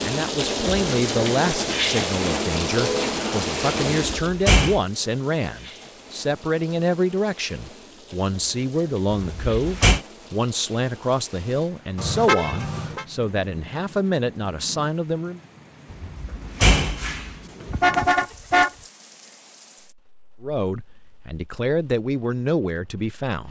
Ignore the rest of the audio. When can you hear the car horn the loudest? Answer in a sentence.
The loudest moment of the car horn is at 18 seconds.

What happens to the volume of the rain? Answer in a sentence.
The loudness of the rain goes down.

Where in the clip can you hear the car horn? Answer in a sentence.
You can hear the car horn from 2.7 to 3.1 s, from 11.9 to 13.1 s and from 17.7 to 18.7 s.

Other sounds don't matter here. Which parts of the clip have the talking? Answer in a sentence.
You can hear the talking from 0.0 to 15.4 s and from 20.4 to 23.4 s.